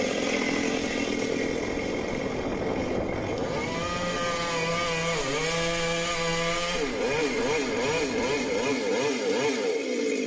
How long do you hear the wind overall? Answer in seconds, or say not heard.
9 s.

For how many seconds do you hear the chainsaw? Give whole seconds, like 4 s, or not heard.
10 s.